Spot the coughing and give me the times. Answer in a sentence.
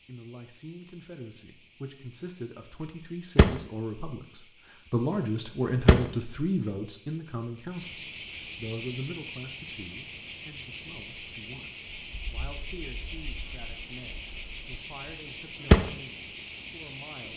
The coughing can't be heard in this clip.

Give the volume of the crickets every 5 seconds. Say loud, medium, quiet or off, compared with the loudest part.
quiet, loud, loud, loud.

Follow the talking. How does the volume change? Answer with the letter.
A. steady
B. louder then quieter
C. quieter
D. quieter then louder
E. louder
B.